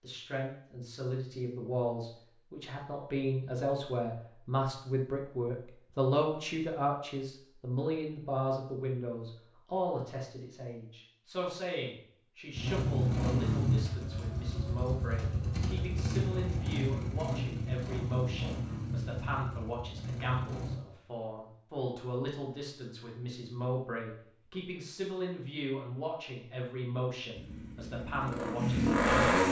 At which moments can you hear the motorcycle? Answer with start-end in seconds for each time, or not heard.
12.6-20.8, 27.4-29.4.